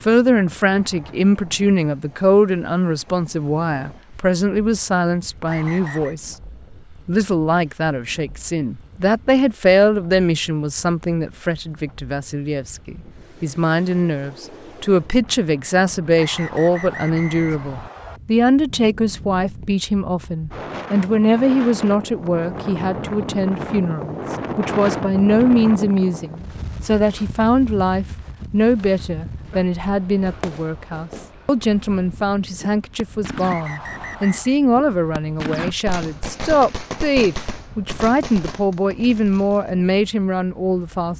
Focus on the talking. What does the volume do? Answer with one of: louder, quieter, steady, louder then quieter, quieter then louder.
steady.